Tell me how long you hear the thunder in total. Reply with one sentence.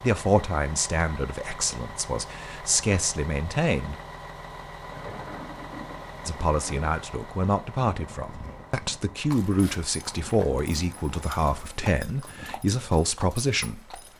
The thunder can be heard for 2 seconds in total.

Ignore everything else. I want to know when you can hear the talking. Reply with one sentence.
You can hear the talking from 0.0 to 4.0 s and from 6.2 to 14.0 s.